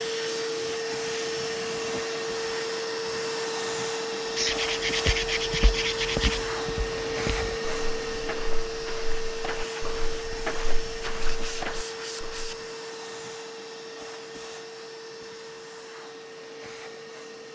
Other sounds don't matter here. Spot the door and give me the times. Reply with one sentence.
The door can't be heard in this clip.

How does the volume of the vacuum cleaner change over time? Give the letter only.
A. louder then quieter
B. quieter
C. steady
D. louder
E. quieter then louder
B.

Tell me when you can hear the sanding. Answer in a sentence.
The sanding can be heard from 4.3 to 6.5 s and from 11.0 to 12.6 s.